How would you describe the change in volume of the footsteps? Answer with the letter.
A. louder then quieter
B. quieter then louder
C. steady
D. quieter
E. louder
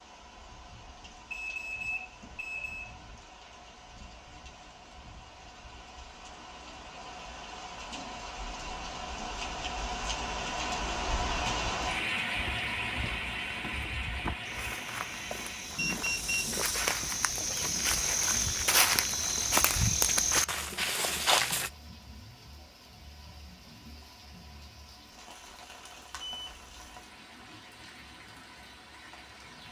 E.